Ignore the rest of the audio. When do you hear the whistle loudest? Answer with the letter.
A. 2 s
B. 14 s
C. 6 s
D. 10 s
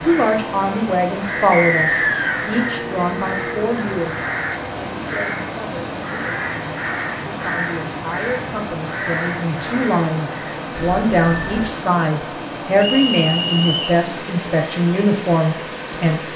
A.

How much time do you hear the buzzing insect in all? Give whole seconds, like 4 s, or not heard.
not heard.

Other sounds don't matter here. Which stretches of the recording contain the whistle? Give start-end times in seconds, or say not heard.
1.5-2.4, 12.8-14.0.